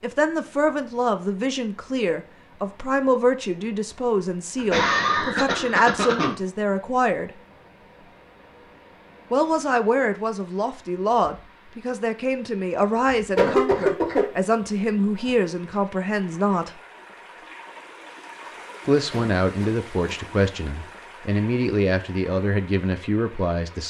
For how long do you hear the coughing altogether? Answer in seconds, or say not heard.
4 s.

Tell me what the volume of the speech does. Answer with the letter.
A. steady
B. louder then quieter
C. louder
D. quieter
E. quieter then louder
A.